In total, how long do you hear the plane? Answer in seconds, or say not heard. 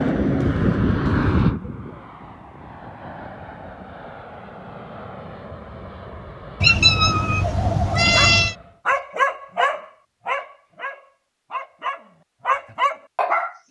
9 s.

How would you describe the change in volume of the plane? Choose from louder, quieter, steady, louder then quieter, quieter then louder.
quieter.